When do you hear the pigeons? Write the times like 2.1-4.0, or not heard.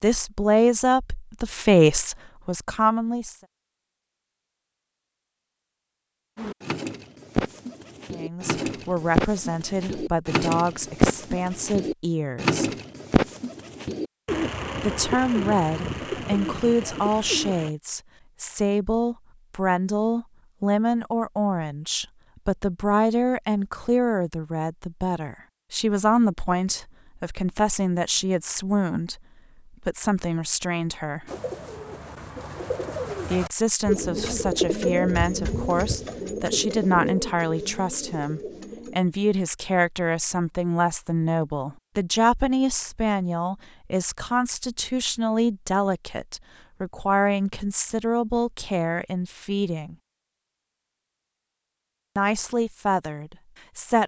6.3-17.8, 31.2-39.0.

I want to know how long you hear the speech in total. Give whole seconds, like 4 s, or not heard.
42 s.